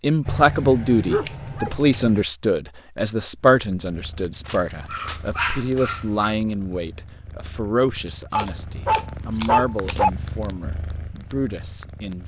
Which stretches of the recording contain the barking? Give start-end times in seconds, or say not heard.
0.2-2.2, 4.5-6.2, 8.3-10.1.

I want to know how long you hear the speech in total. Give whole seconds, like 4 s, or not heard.
12 s.